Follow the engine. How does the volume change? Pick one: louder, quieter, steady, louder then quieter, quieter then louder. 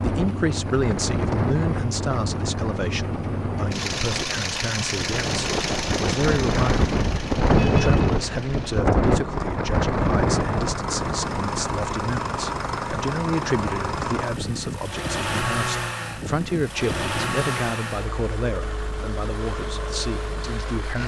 steady.